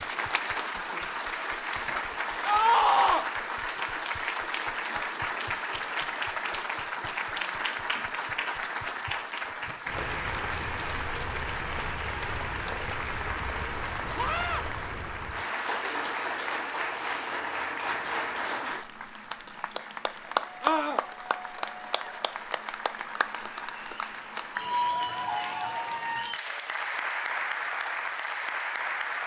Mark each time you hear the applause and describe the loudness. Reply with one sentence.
You can hear the applause from 0.0 to 29.2 s, at a steady volume.